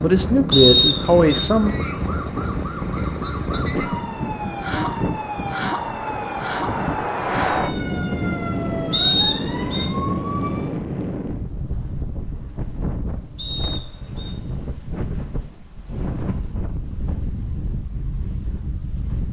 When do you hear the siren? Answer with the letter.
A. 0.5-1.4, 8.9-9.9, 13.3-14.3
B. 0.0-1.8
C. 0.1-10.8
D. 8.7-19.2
C.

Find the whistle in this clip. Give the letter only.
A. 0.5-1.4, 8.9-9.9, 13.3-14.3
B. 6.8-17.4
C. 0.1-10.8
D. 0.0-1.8
A.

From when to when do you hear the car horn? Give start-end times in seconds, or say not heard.
not heard.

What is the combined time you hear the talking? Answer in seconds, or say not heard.
2 s.